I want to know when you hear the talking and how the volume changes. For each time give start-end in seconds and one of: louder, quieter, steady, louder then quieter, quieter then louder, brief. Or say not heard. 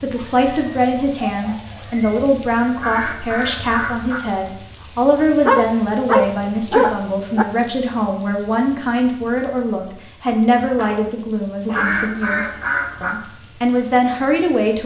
0.0-14.8 steady.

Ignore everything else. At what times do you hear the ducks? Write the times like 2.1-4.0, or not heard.
2.8-4.2, 11.7-13.1.